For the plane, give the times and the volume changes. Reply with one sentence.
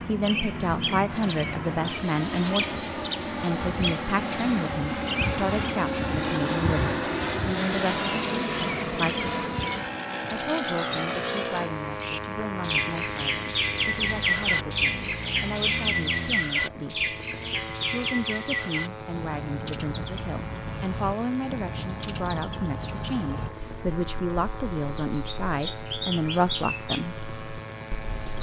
You can hear the plane from 0.0 to 28.3 s, getting quieter.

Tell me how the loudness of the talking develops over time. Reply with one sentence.
The volume of the talking goes down, then up.